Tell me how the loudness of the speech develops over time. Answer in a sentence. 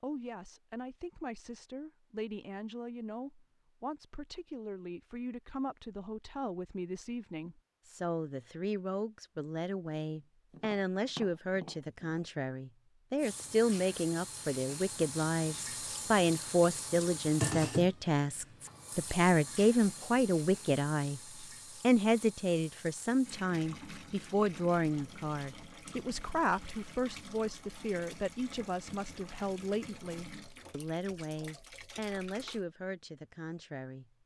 The loudness of the speech goes up, then down.